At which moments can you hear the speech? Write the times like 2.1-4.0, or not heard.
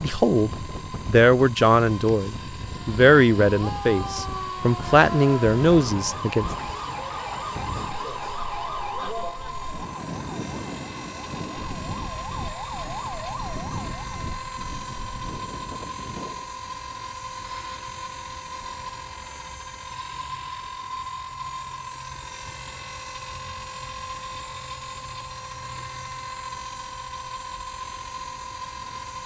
0.0-6.5.